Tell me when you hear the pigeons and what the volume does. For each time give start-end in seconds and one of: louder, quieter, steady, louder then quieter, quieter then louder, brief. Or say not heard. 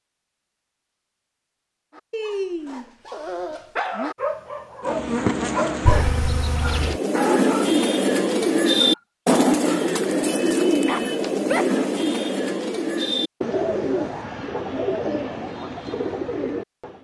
6.7-17.0 quieter.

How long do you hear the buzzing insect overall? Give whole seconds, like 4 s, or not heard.
2 s.